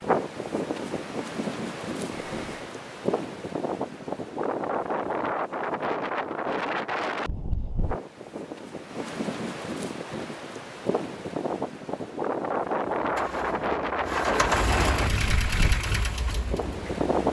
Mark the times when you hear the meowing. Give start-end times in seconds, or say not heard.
2.1-2.8.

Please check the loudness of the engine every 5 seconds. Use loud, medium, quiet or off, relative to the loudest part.
off, off, loud, loud.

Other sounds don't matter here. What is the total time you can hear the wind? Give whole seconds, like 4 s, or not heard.
17 s.